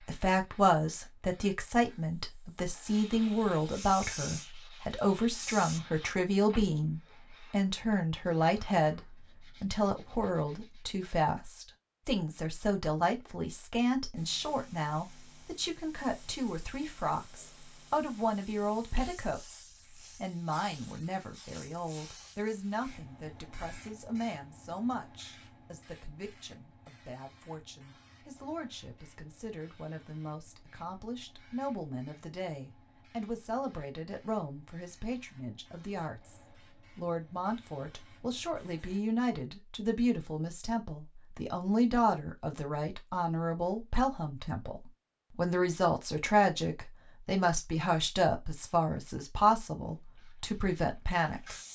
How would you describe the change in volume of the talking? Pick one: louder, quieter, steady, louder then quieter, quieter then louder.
quieter then louder.